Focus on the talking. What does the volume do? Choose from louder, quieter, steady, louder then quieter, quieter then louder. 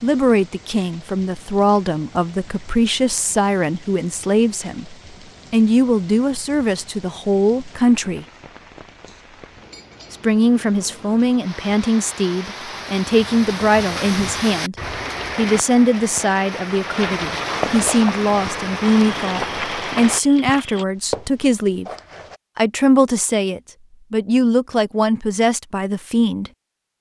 steady.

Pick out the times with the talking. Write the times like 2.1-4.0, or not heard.
0.0-8.2, 10.1-21.9, 22.6-26.5.